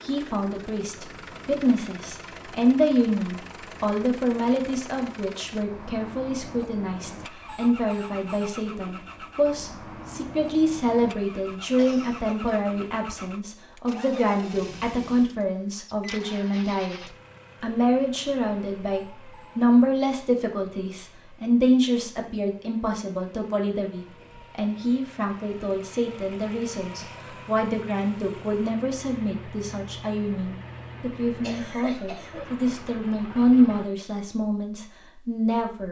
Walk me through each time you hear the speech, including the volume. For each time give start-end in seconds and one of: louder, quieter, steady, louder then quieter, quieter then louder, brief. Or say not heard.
0.0-35.8 steady.